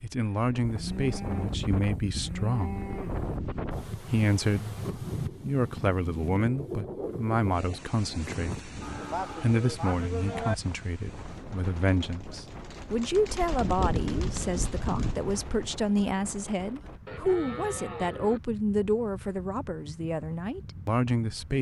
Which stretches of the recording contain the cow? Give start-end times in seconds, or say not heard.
0.6-3.4, 8.8-10.6, 17.1-18.4.